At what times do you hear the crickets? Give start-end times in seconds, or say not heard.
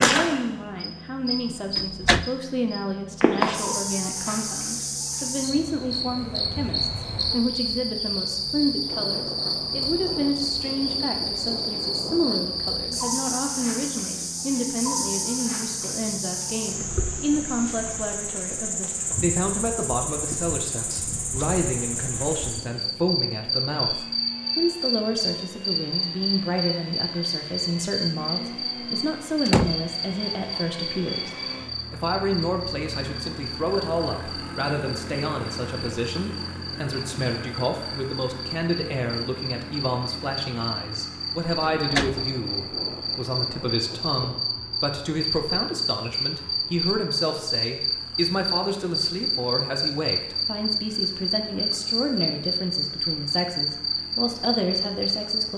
0.0-55.5.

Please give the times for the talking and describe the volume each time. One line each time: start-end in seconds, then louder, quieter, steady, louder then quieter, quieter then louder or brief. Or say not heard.
0.0-55.5 steady.